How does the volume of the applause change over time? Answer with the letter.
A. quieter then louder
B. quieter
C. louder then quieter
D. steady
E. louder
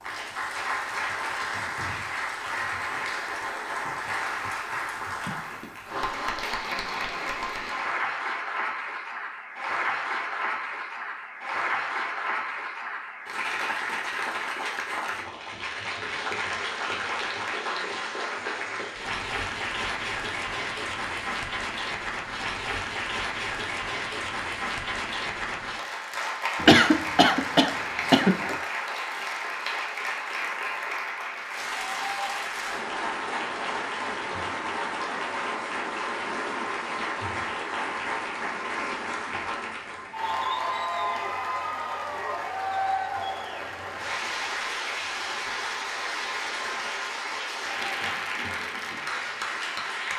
D.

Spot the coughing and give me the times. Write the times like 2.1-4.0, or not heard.
26.6-28.6.